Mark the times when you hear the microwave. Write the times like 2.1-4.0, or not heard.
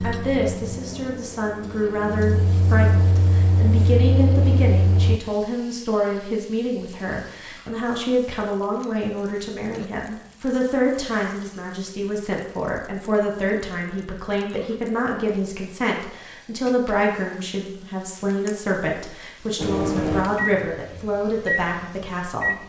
0.0-5.2, 19.6-22.6.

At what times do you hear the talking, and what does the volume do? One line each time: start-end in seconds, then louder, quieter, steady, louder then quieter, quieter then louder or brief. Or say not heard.
0.0-22.6 steady.